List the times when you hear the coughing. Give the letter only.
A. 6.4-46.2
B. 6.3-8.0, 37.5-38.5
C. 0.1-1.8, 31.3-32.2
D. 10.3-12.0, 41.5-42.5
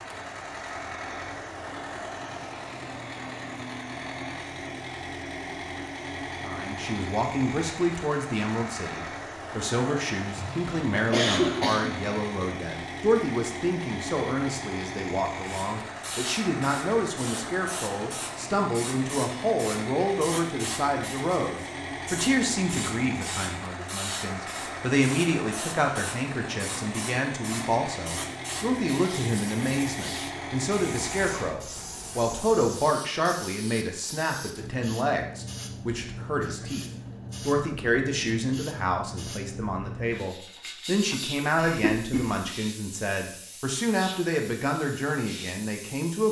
D.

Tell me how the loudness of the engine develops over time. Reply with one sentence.
The loudness of the engine stays about the same.